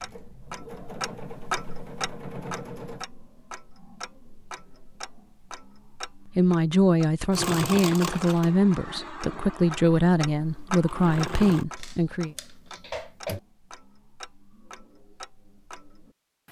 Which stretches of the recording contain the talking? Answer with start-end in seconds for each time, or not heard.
6.3-12.3.